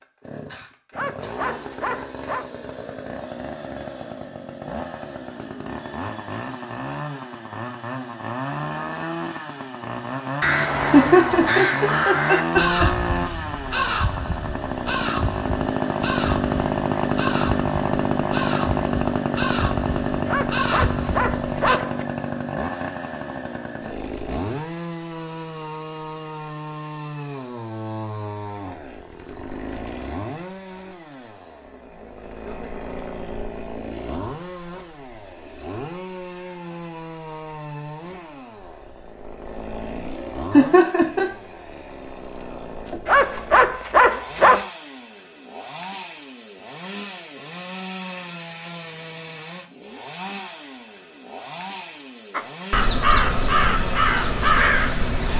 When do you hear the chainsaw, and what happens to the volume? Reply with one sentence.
You can hear the chainsaw from 0.0 to 55.3 s, getting louder then quieter.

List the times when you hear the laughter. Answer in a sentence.
You can hear the laughter from 10.9 to 12.8 s and from 40.5 to 41.3 s.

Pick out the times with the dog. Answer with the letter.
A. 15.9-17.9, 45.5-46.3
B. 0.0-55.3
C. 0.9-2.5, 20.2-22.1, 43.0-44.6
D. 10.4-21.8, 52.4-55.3
C.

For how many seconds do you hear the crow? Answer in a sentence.
The crow can be heard for 14 seconds in total.